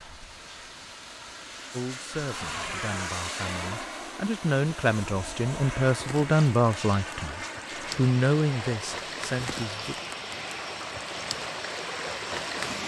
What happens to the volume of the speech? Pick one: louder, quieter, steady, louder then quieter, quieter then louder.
louder.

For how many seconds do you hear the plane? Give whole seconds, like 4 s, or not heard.
13 s.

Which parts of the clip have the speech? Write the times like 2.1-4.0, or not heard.
1.7-9.9.